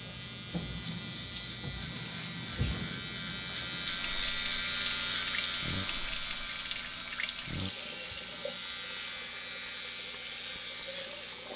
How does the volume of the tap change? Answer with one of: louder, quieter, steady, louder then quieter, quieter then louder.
steady.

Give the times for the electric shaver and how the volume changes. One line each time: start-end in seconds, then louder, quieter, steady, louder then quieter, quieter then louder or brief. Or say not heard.
0.0-11.5 louder then quieter.